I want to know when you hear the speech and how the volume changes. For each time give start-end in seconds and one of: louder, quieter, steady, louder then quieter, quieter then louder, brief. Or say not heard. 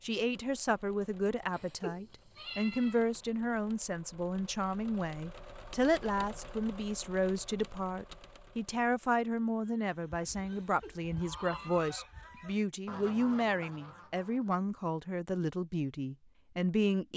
0.0-17.1 steady.